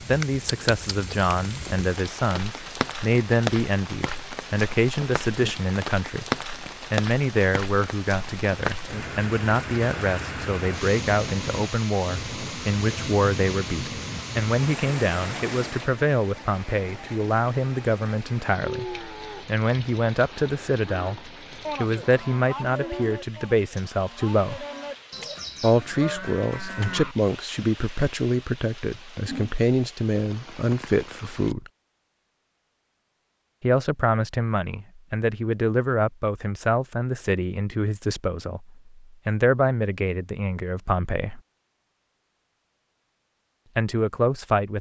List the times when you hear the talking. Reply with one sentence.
You can hear the talking from 0.0 to 24.6 s, from 25.6 to 31.7 s, from 33.6 to 41.4 s and from 43.8 to 44.7 s.